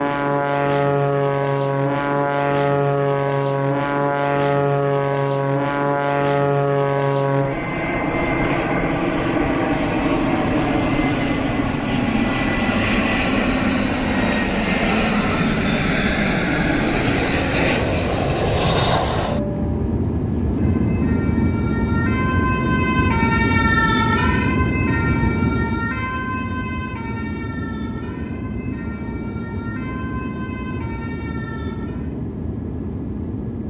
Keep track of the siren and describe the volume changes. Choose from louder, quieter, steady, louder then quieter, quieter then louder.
louder then quieter.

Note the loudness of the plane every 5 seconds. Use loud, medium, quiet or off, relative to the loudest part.
loud, loud, loud, loud, loud, medium, medium.